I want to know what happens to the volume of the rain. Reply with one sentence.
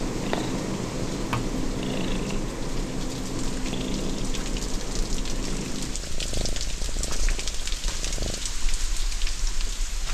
The volume of the rain goes up.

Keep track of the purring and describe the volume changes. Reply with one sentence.
The volume of the purring goes down.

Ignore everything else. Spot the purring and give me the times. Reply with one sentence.
The purring can be heard from 0.0 to 8.4 s.